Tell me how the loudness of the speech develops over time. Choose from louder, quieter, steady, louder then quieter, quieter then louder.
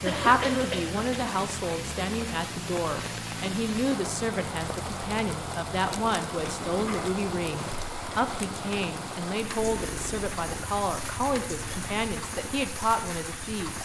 steady.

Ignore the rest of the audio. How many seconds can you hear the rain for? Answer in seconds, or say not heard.
14 s.